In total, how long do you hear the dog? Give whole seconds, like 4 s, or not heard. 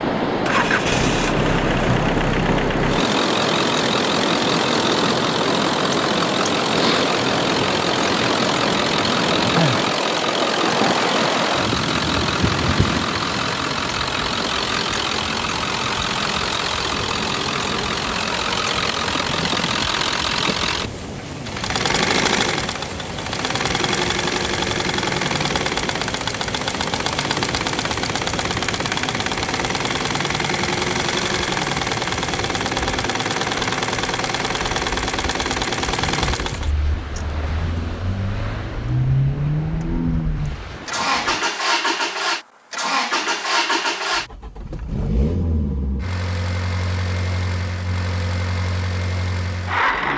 not heard.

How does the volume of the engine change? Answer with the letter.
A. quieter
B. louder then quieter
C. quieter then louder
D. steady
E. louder
D.